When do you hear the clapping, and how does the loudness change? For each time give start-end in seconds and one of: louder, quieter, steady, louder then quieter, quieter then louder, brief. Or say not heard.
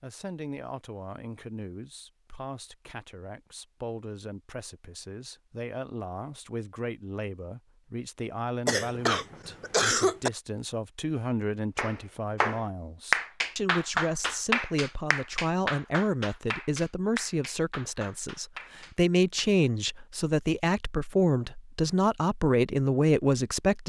11.8-19.4 quieter.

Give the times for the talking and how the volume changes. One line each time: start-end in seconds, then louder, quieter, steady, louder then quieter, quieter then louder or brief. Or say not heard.
0.0-23.8 louder.